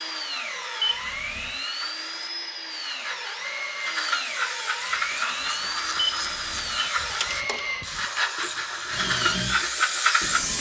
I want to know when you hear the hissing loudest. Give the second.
10 s.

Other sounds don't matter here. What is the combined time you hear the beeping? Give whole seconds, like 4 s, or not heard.
2 s.